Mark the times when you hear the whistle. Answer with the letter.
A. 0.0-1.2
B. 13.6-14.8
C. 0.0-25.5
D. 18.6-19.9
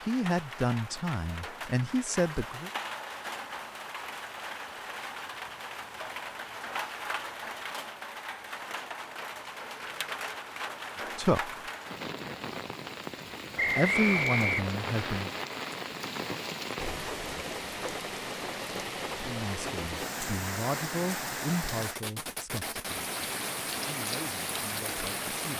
B.